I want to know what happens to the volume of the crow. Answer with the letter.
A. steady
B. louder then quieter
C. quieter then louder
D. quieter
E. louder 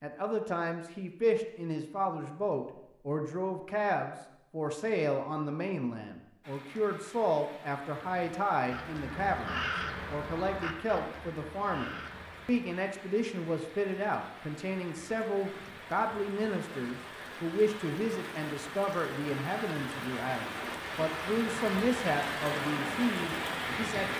B.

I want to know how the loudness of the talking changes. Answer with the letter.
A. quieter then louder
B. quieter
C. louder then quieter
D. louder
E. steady
E.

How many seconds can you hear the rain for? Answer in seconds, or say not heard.
18 s.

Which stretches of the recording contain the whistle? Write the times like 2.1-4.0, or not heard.
not heard.